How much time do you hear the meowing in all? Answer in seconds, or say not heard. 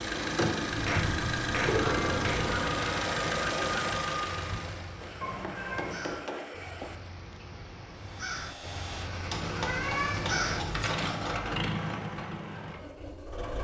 4 s.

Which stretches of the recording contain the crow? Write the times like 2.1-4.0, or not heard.
1.9-10.7.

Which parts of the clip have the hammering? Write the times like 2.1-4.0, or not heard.
0.7-2.5, 5.0-7.0, 9.2-11.4.